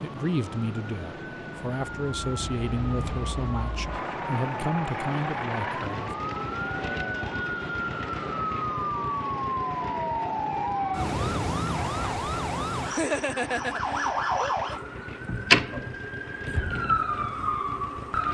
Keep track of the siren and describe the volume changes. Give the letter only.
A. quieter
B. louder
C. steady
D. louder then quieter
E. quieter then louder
B.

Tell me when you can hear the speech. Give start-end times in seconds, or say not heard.
0.0-6.1.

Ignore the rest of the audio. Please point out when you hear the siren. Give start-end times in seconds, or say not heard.
0.0-18.2.